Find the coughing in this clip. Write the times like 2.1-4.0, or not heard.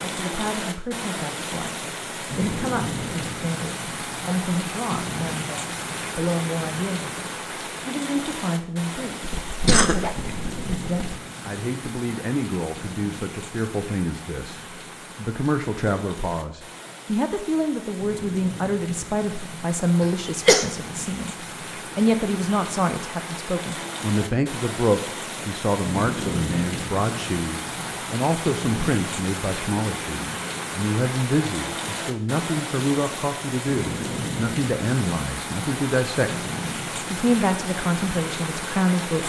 9.2-11.2, 20.0-20.6.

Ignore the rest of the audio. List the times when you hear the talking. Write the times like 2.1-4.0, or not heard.
0.0-36.3, 37.1-39.2.